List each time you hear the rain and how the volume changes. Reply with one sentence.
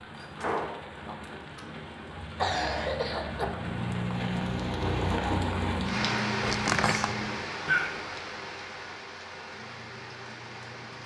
You can hear the rain from 0.0 to 11.0 s, getting louder then quieter.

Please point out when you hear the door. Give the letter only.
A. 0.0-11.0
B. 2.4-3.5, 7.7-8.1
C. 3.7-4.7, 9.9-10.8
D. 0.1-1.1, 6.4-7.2
D.